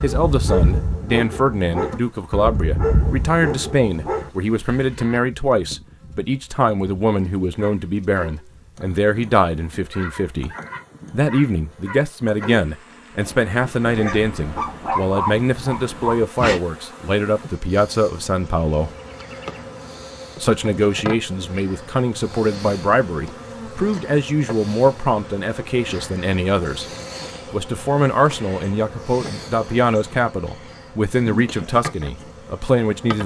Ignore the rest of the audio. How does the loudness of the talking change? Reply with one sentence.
The volume of the talking stays about the same.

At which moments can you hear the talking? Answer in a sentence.
The talking can be heard from 0.0 to 10.5 s, from 11.1 to 18.9 s, from 20.4 to 26.9 s and from 27.5 to 33.2 s.